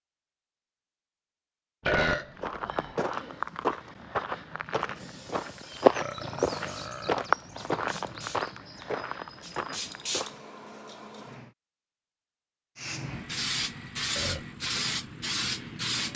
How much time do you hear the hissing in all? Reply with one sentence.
You can hear the hissing for 10 seconds altogether.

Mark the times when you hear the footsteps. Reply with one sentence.
The footsteps can be heard from 2.4 to 10.4 s.